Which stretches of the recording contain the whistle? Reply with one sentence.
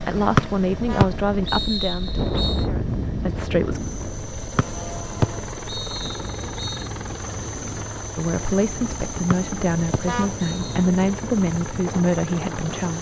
The whistle can be heard from 0.3 to 2.6 s, from 4.5 to 6.9 s and from 9.3 to 10.8 s.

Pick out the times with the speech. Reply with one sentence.
You can hear the speech from 0.0 to 3.8 s and from 8.2 to 12.9 s.